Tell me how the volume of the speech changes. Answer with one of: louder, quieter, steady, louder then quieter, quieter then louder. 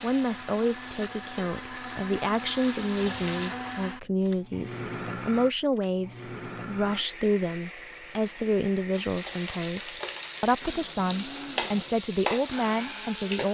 steady.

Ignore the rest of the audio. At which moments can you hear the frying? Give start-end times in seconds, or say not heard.
0.0-3.5, 8.9-13.4.